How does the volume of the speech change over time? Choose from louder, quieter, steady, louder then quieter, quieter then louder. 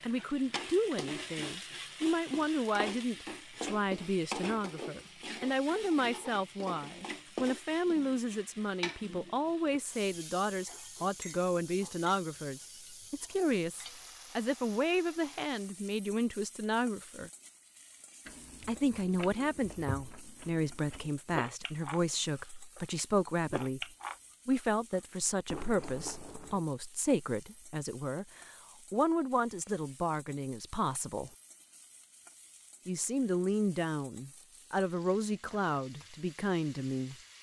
steady.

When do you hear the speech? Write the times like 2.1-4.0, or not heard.
0.0-17.3, 18.6-23.9, 24.4-31.3, 32.9-37.1.